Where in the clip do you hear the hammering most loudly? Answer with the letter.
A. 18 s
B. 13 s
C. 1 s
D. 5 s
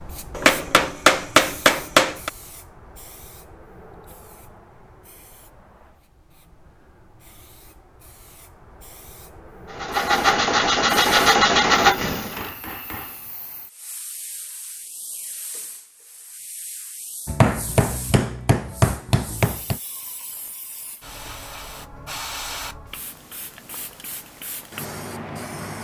C.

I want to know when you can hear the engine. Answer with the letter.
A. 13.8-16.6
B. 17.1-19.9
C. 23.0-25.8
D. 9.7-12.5
D.